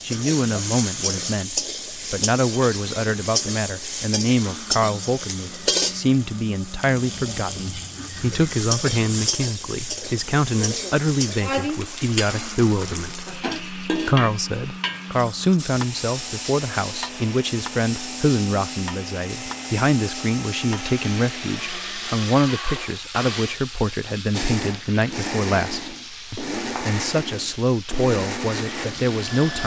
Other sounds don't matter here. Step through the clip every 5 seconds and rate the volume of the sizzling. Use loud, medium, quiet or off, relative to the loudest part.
loud, loud, loud, medium, medium, medium.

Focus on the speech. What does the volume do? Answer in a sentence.
The loudness of the speech stays about the same.